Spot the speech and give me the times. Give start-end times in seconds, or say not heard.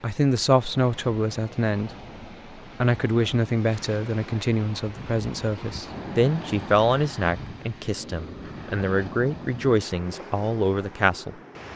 0.0-1.9, 2.8-11.3.